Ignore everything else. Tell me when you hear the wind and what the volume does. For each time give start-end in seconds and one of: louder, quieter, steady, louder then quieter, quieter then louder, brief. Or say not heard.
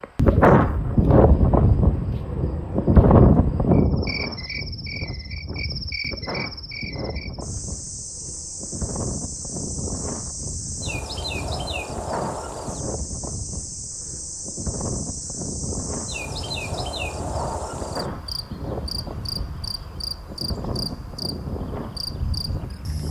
0.0-23.0 quieter.